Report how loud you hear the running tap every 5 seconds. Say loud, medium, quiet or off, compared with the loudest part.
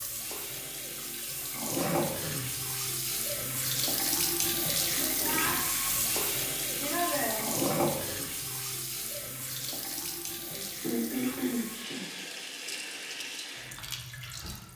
loud, loud, medium.